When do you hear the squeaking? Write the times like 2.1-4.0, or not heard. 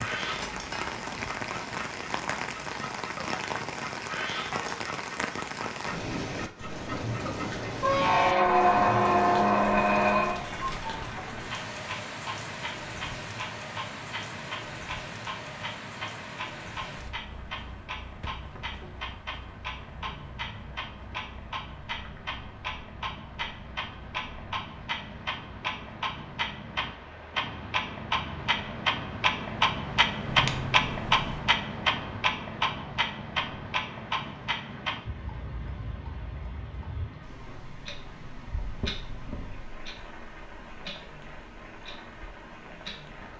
7.8-10.4, 30.3-31.4.